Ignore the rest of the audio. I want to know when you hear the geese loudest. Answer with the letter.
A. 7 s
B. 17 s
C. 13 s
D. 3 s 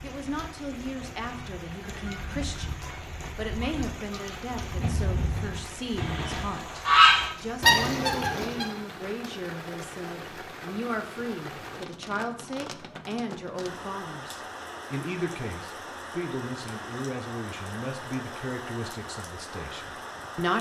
A.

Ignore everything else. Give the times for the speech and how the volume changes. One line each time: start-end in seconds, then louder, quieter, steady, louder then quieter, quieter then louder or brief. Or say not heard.
0.0-20.5 steady.